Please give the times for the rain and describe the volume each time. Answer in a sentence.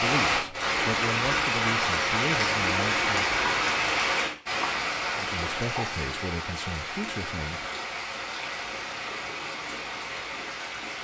You can hear the rain from 0.0 to 10.9 s, getting quieter.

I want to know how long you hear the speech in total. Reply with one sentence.
You can hear the speech for 6 seconds altogether.